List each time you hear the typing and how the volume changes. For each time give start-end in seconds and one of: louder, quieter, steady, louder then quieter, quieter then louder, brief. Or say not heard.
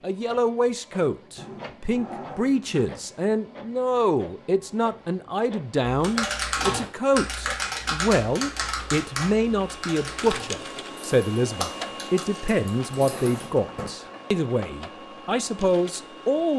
5.8-13.5 quieter.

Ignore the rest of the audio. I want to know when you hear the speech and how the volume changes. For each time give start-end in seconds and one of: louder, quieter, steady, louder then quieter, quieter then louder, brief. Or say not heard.
0.0-16.5 steady.